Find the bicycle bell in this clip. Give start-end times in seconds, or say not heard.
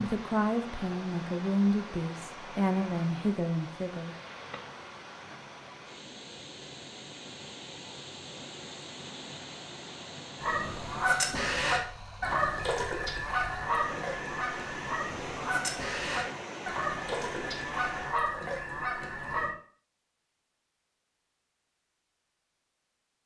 not heard.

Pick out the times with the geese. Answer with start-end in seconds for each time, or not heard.
10.4-19.5.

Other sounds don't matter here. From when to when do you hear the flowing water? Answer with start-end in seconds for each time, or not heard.
0.0-18.2.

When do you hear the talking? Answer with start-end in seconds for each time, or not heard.
0.0-4.2.